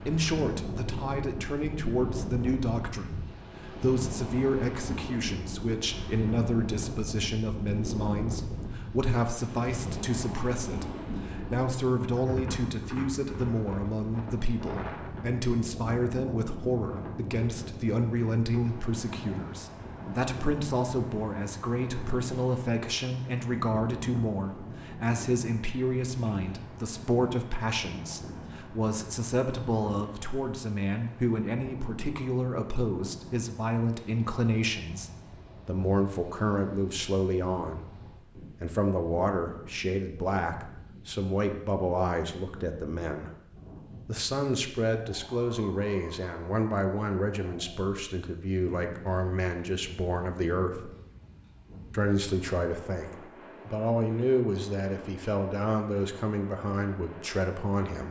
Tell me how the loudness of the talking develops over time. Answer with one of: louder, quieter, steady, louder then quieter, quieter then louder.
steady.